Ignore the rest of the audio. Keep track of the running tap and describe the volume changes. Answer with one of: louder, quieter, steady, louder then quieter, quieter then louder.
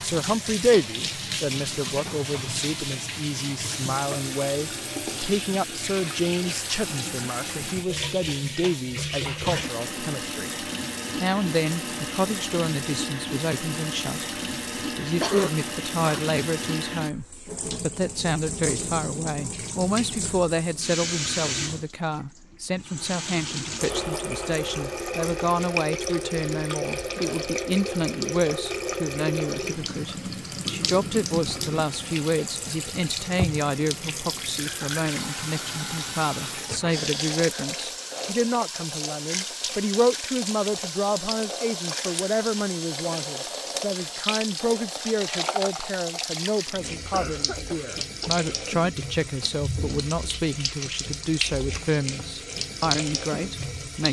steady.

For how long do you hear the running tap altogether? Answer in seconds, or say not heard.
54 s.